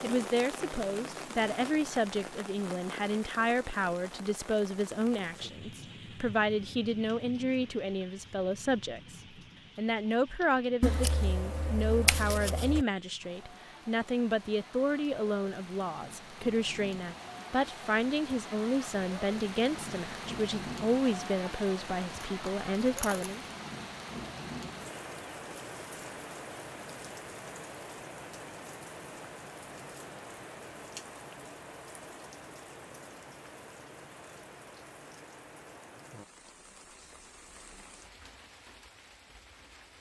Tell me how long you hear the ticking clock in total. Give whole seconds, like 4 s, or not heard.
not heard.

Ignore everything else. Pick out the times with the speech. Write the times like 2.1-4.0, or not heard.
0.0-9.2, 9.8-23.4.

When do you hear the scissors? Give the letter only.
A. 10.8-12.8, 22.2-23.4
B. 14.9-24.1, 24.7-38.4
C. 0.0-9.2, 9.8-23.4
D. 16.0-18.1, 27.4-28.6
A.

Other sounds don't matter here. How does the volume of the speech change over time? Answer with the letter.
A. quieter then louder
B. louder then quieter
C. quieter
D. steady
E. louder
D.